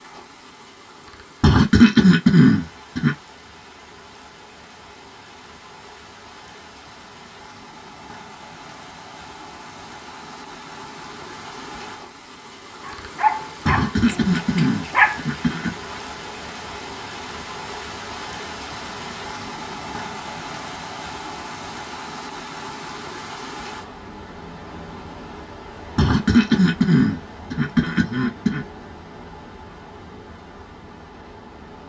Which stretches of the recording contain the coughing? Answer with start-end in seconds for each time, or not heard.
1.4-3.1, 13.7-15.7, 25.9-28.6.